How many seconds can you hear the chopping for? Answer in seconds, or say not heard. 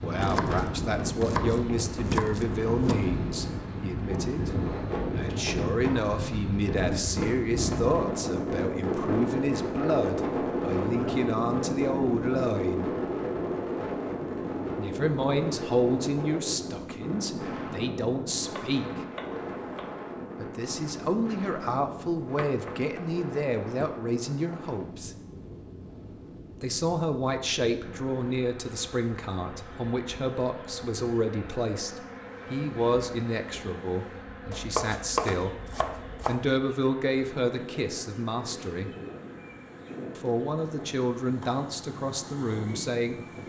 8 s.